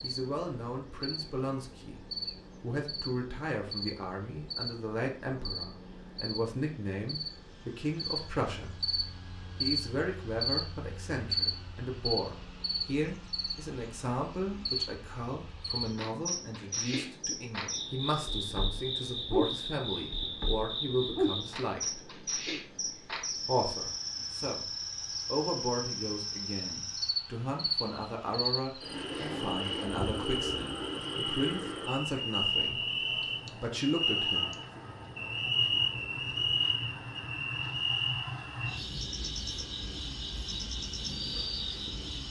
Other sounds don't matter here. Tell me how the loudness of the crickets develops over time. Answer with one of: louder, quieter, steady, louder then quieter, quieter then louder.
louder.